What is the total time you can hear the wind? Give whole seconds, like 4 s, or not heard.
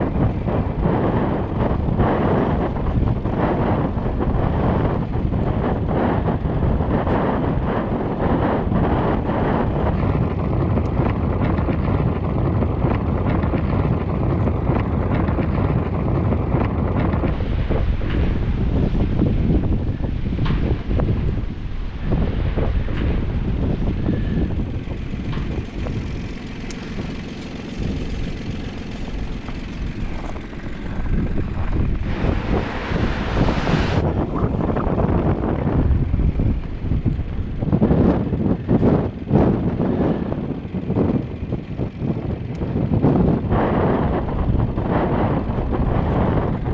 47 s.